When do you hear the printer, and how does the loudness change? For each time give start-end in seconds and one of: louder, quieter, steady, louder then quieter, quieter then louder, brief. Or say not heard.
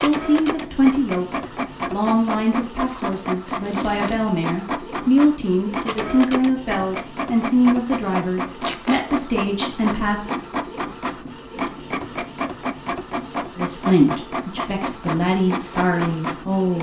0.0-16.7 steady.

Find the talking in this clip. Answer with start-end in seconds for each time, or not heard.
0.0-10.2, 13.6-16.7.